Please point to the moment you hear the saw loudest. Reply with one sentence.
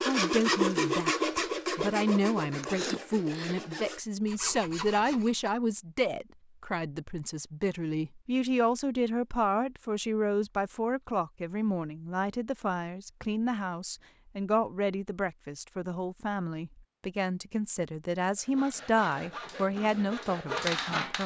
The loudest moment of the saw is at 1 second.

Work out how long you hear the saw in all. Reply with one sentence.
The saw can be heard for 8 seconds in total.